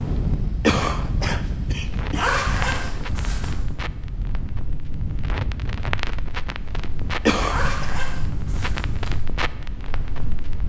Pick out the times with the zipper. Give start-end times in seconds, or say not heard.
2.1-3.5, 7.5-9.2.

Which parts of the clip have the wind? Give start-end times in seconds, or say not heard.
0.0-10.6.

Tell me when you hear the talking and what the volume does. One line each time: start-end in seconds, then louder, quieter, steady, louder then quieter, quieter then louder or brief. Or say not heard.
not heard.